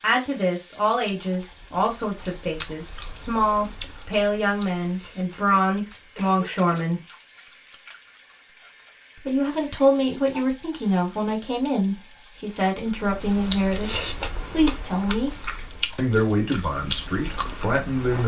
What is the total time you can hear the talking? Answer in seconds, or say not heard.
16 s.